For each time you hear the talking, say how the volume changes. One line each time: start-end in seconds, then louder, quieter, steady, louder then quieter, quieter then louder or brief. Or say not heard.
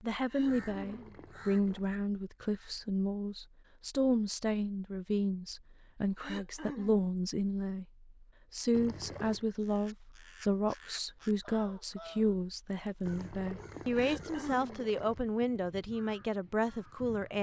0.0-17.3 steady.